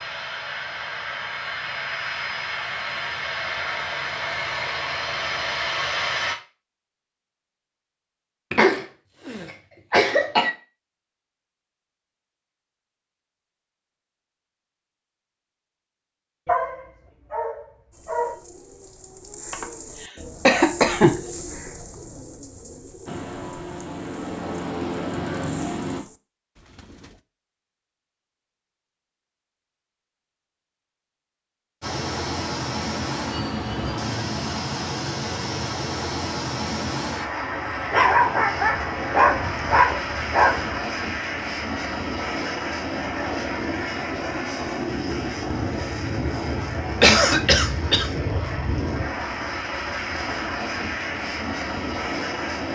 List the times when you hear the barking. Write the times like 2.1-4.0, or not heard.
16.4-18.4, 37.9-40.8.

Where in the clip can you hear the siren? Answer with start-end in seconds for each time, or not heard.
not heard.